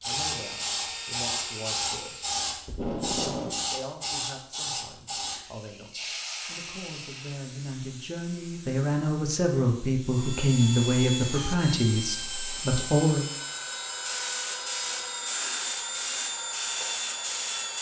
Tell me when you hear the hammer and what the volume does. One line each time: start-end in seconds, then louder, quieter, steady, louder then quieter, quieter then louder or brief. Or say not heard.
not heard.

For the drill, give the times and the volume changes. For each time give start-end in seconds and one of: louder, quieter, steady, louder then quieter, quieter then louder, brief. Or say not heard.
0.0-2.5 brief
10.0-17.7 steady.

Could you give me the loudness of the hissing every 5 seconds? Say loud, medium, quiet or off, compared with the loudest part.
loud, medium, medium, loud.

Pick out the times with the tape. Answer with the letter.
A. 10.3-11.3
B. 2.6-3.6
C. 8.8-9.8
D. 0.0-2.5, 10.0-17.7
B.